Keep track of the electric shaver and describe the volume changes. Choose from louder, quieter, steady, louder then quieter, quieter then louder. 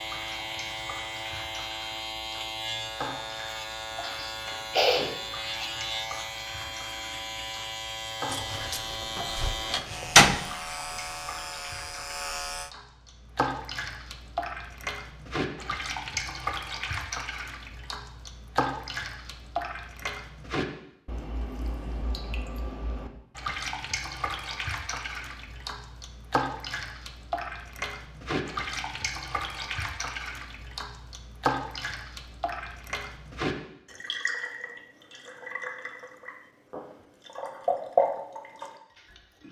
steady.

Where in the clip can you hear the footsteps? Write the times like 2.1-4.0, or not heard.
not heard.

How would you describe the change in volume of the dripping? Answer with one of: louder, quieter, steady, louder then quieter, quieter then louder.
louder.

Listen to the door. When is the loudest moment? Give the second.
10 s.